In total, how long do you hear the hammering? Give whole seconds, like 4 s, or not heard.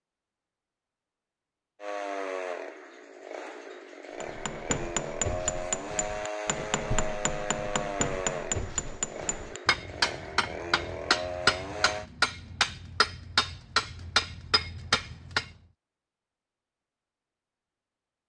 11 s.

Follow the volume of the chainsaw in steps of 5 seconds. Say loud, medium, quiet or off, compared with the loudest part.
loud, loud, loud, off.